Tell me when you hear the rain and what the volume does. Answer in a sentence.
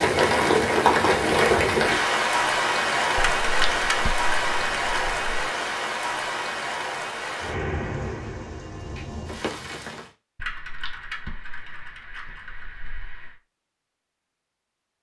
The rain can be heard from 0.0 to 10.1 s, getting quieter.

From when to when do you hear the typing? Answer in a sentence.
You can hear the typing from 3.1 to 5.3 s and from 10.3 to 13.3 s.